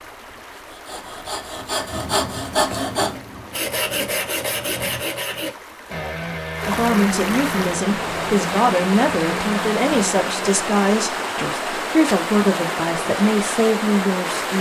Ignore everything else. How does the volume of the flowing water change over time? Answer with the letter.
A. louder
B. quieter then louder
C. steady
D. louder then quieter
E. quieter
A.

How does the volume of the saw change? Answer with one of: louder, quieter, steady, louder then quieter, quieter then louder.
quieter.